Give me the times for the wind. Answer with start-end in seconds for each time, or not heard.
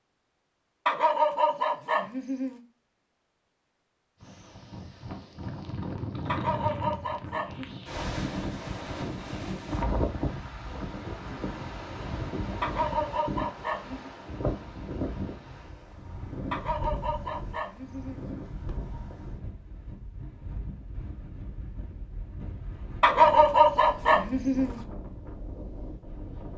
4.2-26.5.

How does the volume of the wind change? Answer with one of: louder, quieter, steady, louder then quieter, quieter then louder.
quieter.